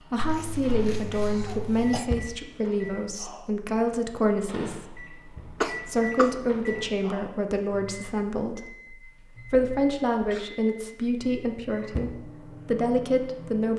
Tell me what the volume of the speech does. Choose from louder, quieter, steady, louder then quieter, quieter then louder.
steady.